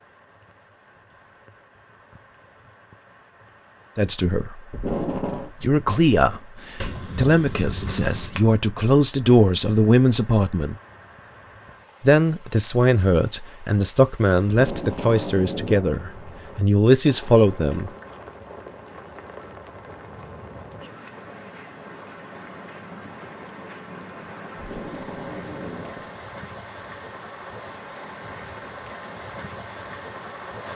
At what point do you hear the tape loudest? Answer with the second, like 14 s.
5 s.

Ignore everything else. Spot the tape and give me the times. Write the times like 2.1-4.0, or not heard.
4.7-5.5, 14.4-16.0, 24.6-26.1.